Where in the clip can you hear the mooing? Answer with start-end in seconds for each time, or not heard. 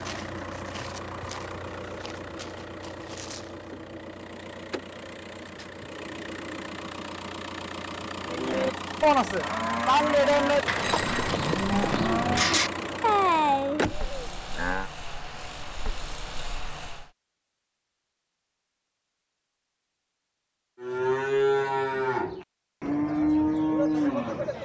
8.2-14.9, 20.8-24.5.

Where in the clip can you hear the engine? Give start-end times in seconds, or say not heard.
0.0-17.1.